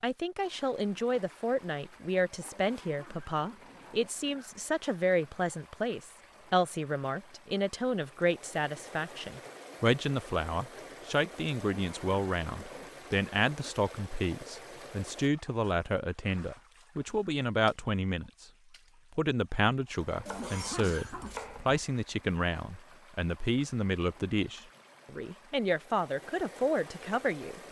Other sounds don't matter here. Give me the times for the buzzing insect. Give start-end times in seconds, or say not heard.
not heard.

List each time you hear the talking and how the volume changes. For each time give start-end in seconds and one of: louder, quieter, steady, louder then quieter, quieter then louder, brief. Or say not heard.
0.0-18.4 steady
19.1-27.6 steady.